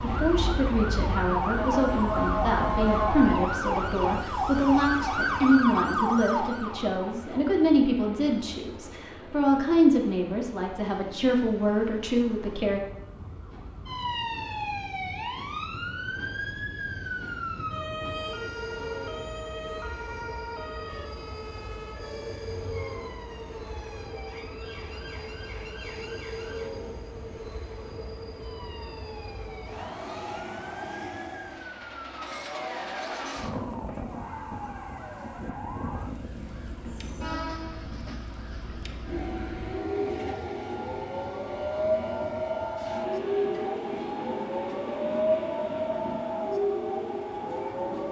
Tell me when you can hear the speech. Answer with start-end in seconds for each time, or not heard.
0.0-12.8.